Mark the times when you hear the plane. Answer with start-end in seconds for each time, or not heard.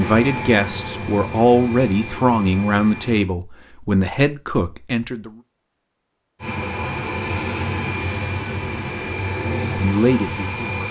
0.0-3.3, 6.4-10.8.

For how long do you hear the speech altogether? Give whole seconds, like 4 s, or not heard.
6 s.